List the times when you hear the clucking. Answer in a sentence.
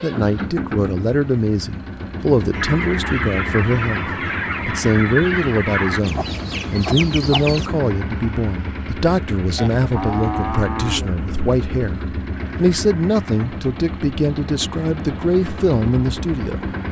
You can hear the clucking from 2.5 to 7.7 s.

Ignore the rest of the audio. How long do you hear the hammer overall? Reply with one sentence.
You can't hear the hammer here.